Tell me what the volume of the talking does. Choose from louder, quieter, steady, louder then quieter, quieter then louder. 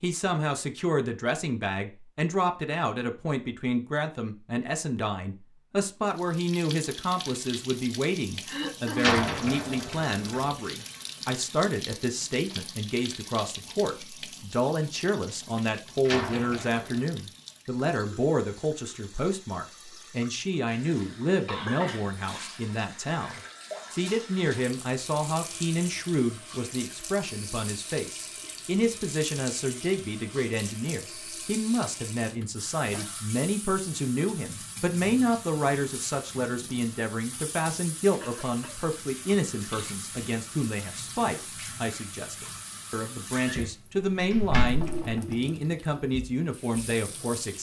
steady.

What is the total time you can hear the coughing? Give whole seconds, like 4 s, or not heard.
2 s.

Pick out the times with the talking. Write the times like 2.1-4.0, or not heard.
0.0-47.5.